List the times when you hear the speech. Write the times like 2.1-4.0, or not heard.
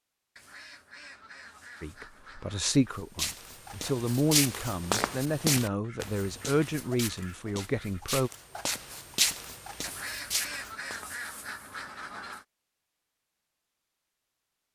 1.8-8.3.